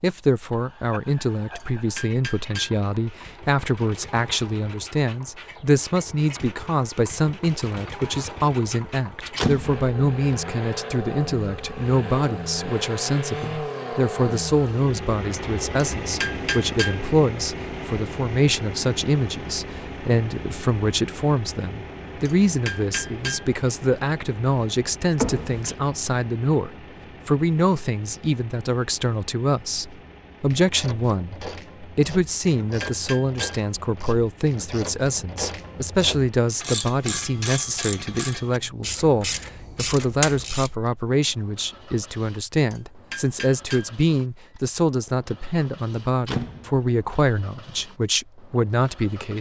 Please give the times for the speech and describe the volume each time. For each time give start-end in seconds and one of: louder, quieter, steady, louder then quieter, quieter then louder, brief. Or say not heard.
0.0-49.3 steady.